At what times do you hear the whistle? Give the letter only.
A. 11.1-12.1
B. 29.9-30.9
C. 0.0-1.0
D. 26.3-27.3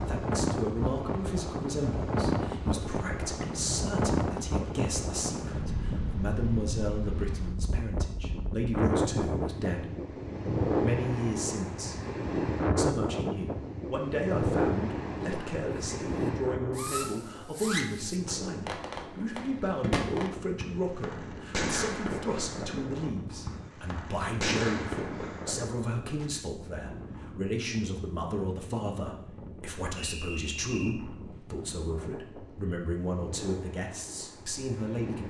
B.